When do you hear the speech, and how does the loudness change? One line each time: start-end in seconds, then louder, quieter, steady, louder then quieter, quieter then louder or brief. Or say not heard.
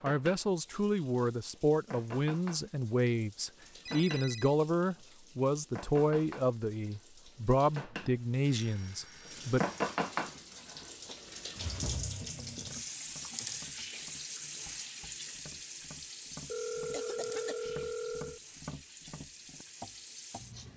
0.0-9.6 steady.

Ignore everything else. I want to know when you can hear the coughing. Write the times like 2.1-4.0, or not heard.
16.9-17.6.